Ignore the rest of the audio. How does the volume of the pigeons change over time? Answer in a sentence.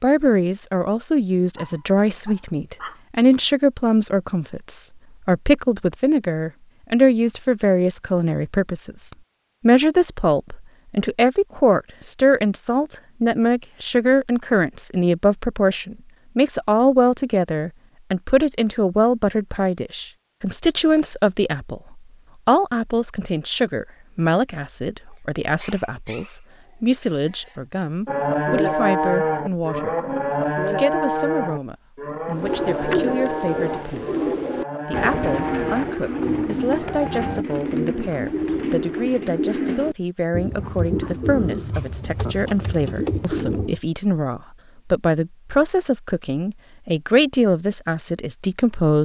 The loudness of the pigeons stays about the same.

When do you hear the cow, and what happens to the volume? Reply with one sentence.
The cow can be heard from 28.1 to 37.5 s, getting quieter.